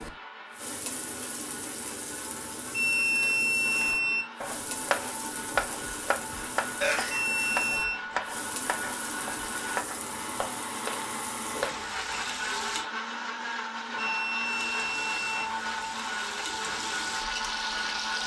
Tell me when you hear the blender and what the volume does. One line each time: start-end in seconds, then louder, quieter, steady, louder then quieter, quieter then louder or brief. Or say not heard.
0.0-18.2 louder.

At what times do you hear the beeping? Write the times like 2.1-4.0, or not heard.
2.7-4.2, 7.0-8.0, 13.9-15.4.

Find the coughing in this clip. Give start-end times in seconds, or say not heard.
6.8-7.5.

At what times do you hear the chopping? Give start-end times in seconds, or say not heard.
3.8-11.9.